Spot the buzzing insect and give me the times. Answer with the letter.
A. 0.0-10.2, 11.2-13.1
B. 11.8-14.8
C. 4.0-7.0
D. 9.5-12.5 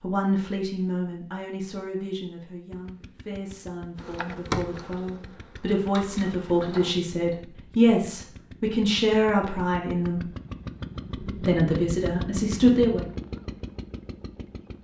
C.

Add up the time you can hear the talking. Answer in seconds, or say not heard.
12 s.